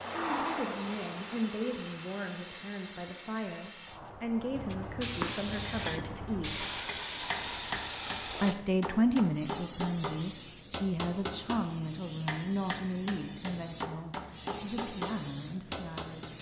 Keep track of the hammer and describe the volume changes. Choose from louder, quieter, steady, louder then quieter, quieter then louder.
steady.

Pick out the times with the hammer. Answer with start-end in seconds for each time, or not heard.
4.1-16.3.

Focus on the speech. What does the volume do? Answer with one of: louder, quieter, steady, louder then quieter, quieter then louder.
louder then quieter.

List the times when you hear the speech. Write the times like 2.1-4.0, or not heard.
0.2-6.6, 8.4-16.3.